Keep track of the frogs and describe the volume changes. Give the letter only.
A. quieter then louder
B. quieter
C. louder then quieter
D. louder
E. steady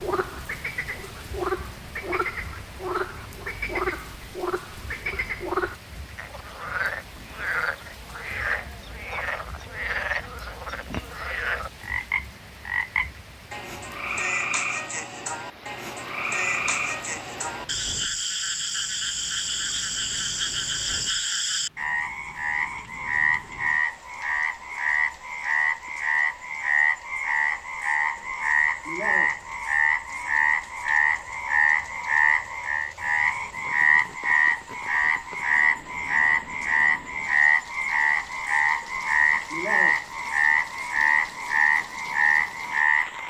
D.